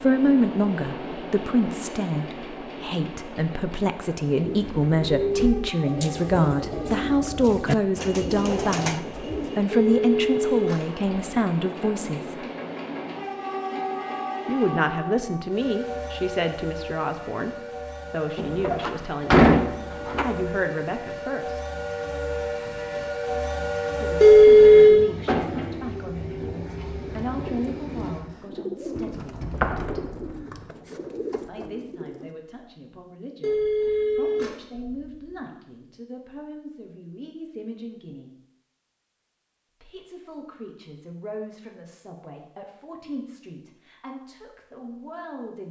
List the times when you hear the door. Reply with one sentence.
You can hear the door from 18.4 to 20.2 s and from 29.4 to 30.6 s.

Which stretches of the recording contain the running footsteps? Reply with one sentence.
You can't hear the running footsteps here.